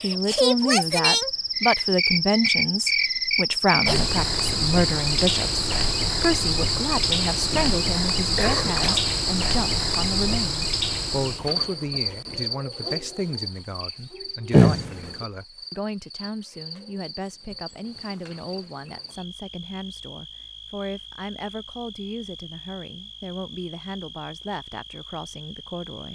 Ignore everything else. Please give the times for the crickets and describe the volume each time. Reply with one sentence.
You can hear the crickets from 0.0 to 26.1 s, getting quieter.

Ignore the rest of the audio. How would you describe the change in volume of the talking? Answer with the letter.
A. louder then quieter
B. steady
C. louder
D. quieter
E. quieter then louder
D.